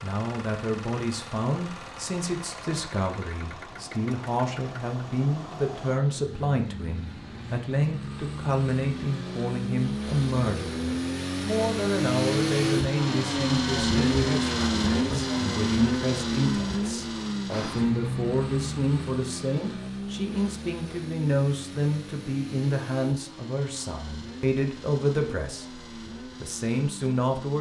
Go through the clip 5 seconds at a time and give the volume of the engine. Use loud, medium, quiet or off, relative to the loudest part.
quiet, medium, loud, loud, quiet, quiet.